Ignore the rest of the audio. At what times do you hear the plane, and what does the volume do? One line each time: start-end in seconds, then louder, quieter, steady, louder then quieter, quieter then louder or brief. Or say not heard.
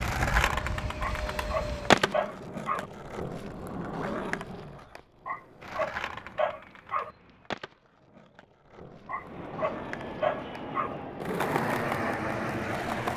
0.0-4.8 quieter then louder
9.1-13.1 louder.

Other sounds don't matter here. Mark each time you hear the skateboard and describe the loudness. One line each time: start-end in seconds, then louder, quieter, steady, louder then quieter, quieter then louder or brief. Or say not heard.
0.0-13.1 quieter then louder.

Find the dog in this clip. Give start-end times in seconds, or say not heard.
1.0-2.9, 5.2-7.1, 9.1-10.9.